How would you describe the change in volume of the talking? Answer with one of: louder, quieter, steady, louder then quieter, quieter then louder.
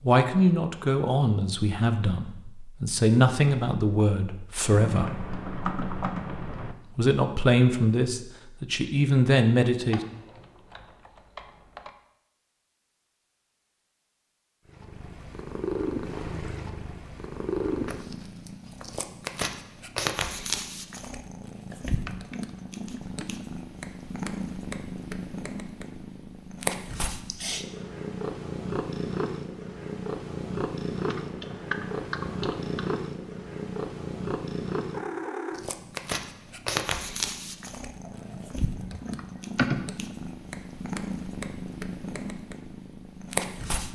steady.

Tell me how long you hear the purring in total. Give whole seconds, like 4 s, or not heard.
29 s.